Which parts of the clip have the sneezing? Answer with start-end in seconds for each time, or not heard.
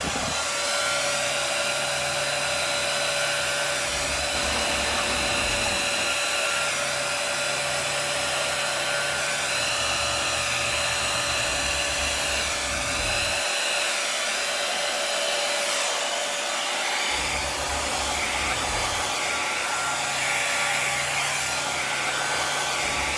not heard.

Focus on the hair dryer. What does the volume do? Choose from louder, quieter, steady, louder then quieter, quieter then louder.
steady.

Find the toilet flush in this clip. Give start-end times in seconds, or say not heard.
4.3-6.2.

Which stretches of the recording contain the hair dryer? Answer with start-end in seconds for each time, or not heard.
0.0-23.1.